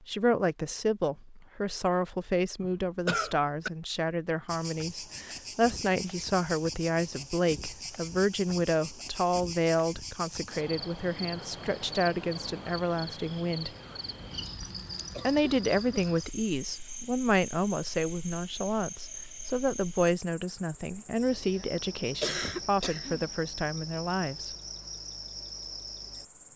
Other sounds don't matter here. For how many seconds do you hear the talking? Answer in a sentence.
You can hear the talking for 23 seconds altogether.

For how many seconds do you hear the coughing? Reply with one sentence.
The coughing can be heard for 4 seconds in total.